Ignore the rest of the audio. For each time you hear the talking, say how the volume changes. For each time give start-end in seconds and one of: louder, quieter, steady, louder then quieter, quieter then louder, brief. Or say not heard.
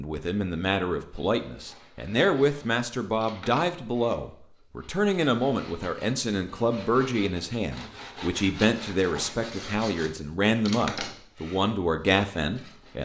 0.0-13.0 steady.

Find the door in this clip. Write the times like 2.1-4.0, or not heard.
not heard.